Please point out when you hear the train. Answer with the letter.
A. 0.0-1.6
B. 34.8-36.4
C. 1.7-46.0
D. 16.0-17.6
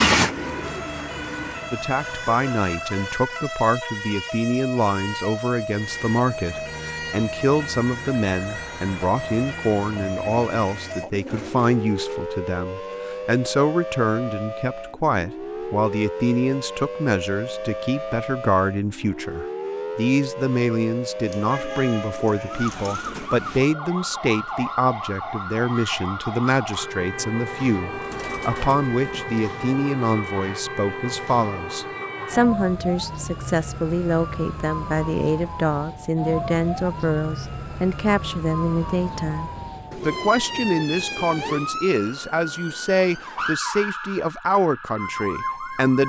A.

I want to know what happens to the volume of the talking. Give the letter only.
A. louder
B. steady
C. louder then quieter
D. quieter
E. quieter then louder
B.